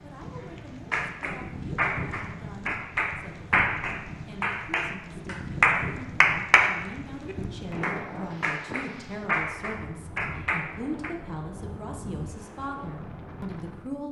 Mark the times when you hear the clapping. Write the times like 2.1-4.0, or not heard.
0.9-11.2.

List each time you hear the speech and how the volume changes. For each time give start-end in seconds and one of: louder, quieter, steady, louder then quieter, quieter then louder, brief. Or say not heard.
0.0-14.0 louder.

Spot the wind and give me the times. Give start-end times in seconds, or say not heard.
0.0-14.0.